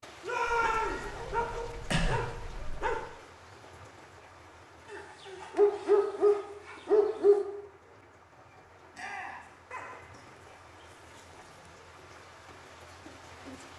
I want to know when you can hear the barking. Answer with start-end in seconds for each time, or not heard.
0.5-3.0, 4.9-7.4, 9.7-11.7.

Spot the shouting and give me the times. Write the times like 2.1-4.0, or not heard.
0.2-1.1, 8.9-9.5.